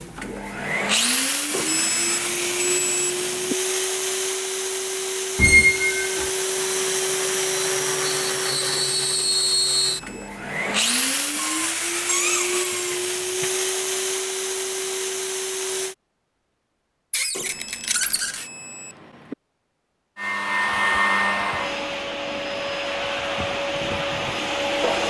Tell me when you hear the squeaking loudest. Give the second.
6 s.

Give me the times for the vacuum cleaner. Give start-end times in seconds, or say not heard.
0.0-15.9, 20.1-25.0.